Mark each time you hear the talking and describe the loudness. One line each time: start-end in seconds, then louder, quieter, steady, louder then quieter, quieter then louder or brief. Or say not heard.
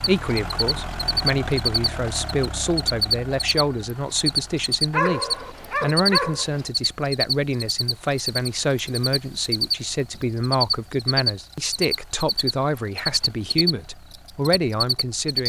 0.0-15.4 steady.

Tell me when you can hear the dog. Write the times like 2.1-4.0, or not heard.
4.9-6.7.